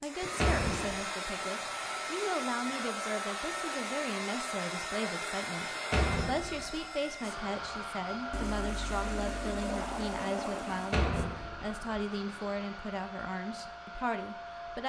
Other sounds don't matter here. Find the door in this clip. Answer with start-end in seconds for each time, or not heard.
0.3-1.0, 5.9-6.8, 10.9-11.8.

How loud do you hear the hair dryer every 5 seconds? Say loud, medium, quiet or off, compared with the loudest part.
loud, loud, medium.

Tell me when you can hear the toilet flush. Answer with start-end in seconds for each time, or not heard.
0.2-1.1, 8.3-11.1.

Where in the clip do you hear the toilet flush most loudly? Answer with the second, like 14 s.
10 s.